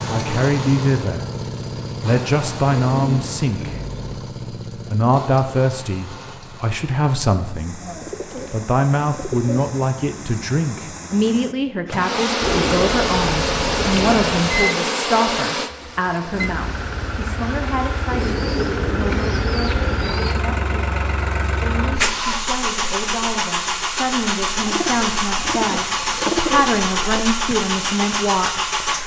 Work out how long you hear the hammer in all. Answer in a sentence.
You can't hear the hammer here.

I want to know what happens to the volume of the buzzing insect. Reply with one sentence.
The volume of the buzzing insect goes down.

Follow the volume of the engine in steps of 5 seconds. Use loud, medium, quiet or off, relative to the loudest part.
medium, quiet, medium, medium, loud, loud.